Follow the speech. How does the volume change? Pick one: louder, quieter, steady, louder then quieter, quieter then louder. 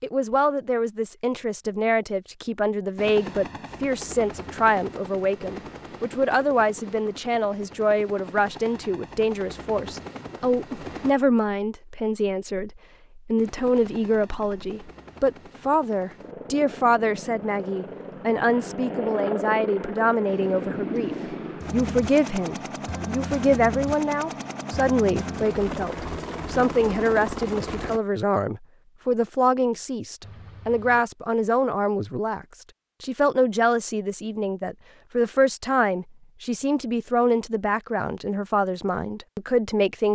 steady.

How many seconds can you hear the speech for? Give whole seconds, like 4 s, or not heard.
40 s.